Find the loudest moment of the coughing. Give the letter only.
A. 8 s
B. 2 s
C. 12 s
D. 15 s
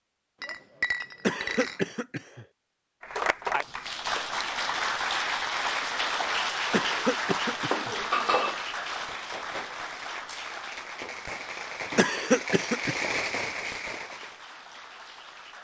C.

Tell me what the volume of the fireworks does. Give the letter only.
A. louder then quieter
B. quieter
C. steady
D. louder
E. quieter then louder
D.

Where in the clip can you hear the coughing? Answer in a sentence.
The coughing can be heard from 1.2 to 2.5 s, from 6.7 to 8.0 s and from 11.9 to 13.0 s.